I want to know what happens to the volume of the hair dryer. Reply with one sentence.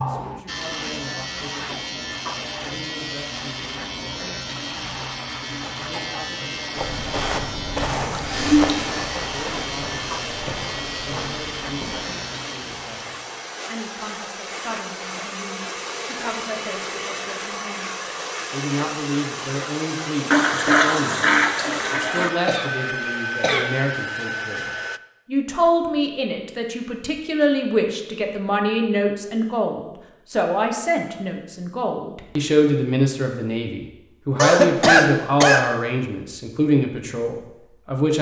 The loudness of the hair dryer goes up.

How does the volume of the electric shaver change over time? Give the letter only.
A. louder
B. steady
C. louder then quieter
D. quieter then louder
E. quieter
B.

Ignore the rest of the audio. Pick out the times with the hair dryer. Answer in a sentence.
The hair dryer can be heard from 7.8 to 25.0 s.